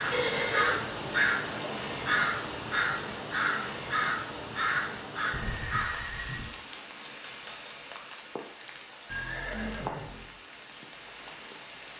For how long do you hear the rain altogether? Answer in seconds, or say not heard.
12 s.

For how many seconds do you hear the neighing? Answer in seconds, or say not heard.
3 s.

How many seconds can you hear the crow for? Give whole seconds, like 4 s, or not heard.
6 s.